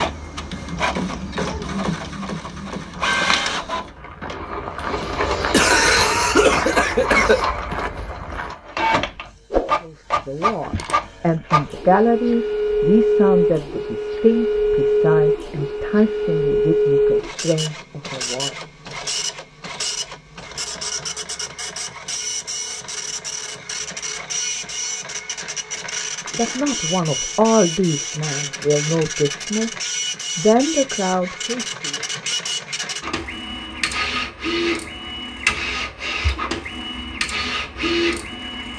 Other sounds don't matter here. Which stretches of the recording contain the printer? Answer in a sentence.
The printer can be heard from 0.0 to 38.7 s.